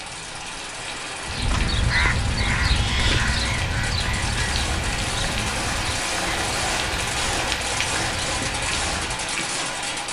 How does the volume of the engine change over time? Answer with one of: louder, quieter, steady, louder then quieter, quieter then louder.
louder.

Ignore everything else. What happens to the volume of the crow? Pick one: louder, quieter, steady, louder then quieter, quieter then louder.
quieter.